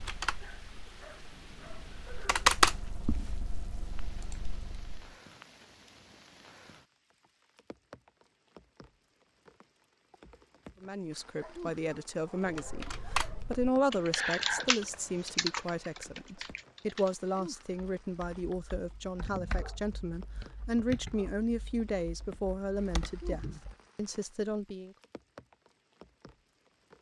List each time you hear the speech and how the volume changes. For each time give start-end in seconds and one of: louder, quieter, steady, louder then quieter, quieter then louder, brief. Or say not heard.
10.8-24.9 steady.